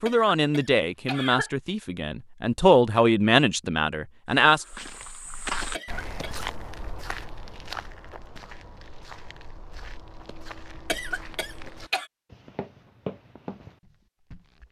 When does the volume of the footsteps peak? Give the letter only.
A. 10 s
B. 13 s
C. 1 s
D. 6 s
D.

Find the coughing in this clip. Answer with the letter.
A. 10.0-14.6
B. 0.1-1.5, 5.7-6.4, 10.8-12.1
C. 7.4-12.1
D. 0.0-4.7
B.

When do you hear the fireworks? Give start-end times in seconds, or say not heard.
not heard.